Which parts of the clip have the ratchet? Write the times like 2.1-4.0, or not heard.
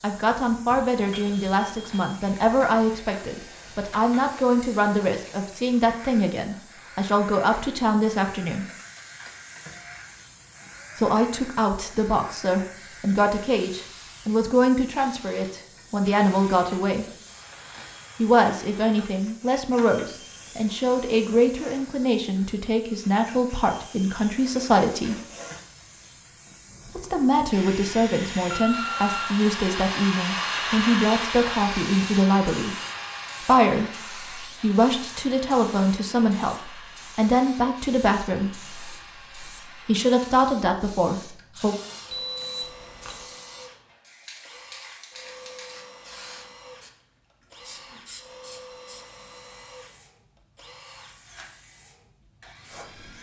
not heard.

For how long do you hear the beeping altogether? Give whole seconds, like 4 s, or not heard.
3 s.